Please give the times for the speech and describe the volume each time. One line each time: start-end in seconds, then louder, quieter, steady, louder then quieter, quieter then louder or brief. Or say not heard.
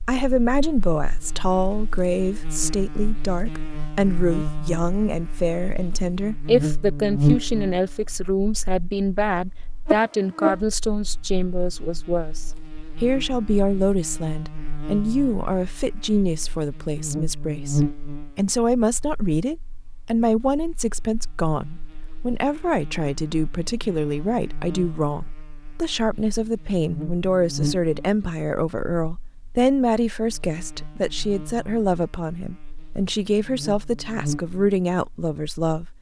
0.1-35.9 steady.